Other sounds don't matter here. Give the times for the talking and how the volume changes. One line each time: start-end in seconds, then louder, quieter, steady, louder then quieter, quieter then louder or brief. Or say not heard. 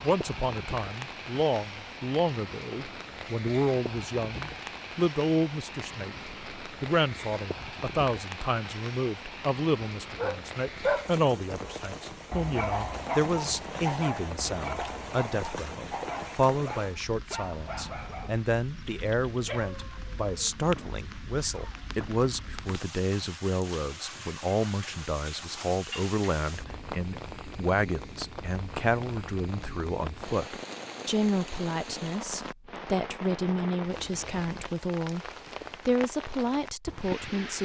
0.0-37.6 steady.